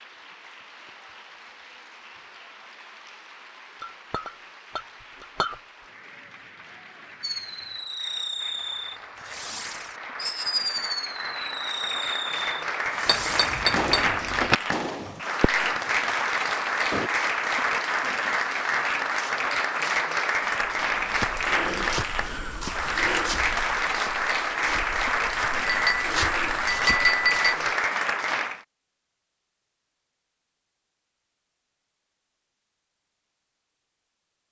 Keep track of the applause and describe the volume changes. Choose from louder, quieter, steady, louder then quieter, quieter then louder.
louder.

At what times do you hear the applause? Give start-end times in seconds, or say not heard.
0.0-28.6.